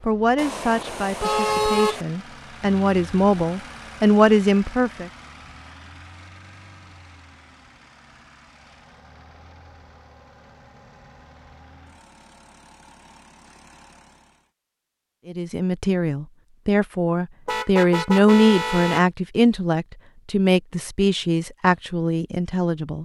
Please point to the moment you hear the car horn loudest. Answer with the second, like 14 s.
2 s.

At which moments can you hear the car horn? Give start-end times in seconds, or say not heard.
0.3-2.0, 17.4-19.1.